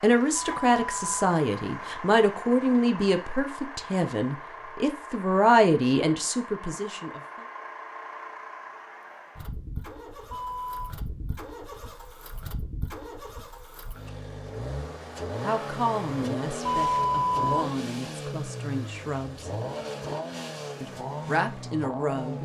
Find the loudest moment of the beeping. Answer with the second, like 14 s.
17 s.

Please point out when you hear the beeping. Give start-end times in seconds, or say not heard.
0.3-1.2, 10.3-10.9, 16.6-17.5.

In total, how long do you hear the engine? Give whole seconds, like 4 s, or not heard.
22 s.